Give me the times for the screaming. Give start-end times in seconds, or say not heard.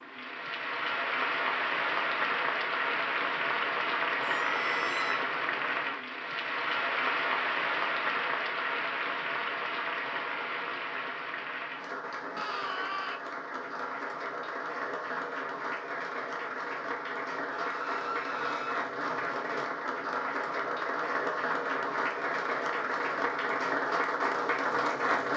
4.2-5.2, 12.3-13.2, 17.5-18.9.